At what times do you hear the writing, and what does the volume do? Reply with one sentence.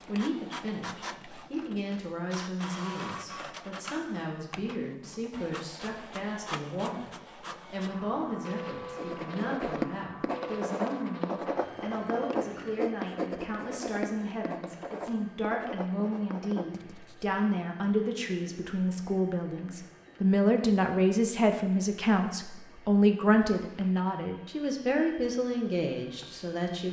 You can hear the writing from 8.9 to 17.3 s, getting quieter.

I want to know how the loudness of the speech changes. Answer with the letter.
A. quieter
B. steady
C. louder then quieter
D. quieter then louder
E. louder
E.